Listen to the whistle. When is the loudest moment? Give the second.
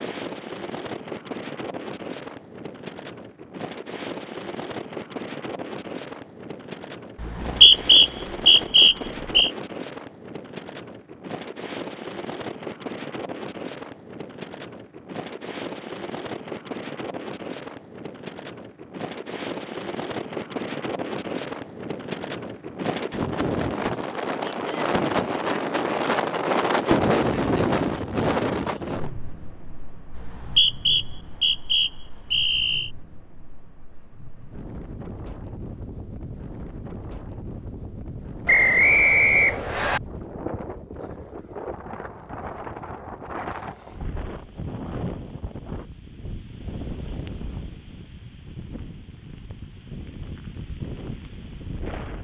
8 s.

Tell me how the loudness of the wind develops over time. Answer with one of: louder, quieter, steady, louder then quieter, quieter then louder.
louder then quieter.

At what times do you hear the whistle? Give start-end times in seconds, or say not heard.
7.2-9.5, 30.1-32.9, 38.5-40.0.